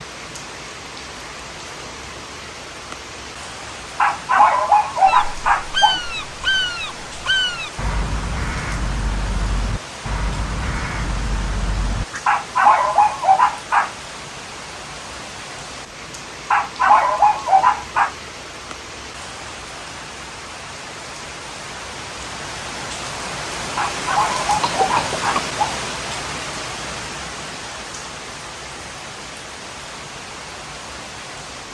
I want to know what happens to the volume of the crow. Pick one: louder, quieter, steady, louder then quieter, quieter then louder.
quieter.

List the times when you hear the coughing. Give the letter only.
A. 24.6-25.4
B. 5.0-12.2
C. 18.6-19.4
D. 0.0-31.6
A.